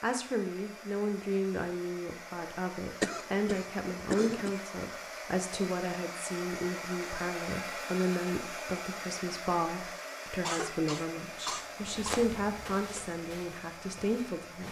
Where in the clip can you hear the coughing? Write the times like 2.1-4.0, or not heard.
3.0-4.6, 10.4-12.3.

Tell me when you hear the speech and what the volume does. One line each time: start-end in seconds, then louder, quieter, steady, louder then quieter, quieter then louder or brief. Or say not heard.
0.0-14.6 steady.